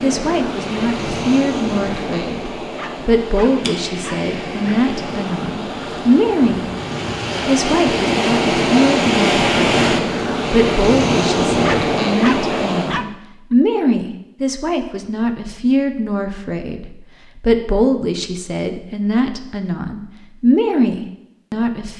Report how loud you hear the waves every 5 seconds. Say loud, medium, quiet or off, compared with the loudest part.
medium, loud, loud, off, off.